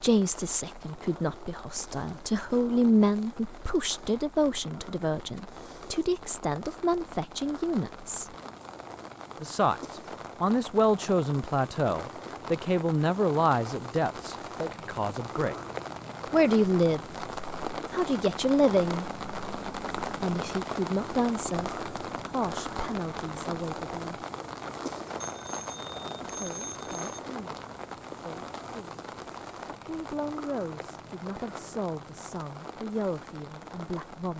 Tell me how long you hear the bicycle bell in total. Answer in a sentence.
The bicycle bell can be heard for 2 seconds in total.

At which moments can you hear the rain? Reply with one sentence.
The rain can be heard from 0.0 to 34.3 s.